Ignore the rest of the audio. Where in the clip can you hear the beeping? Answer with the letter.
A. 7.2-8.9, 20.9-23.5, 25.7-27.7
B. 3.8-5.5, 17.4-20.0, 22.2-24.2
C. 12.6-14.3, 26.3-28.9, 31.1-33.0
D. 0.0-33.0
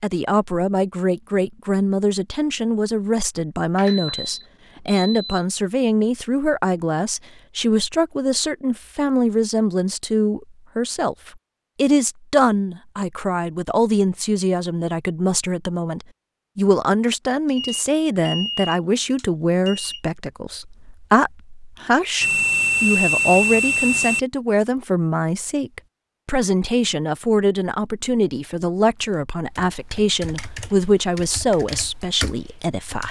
B.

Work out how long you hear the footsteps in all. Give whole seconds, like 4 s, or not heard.
not heard.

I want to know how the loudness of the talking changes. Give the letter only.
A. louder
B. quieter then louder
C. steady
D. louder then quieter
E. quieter
C.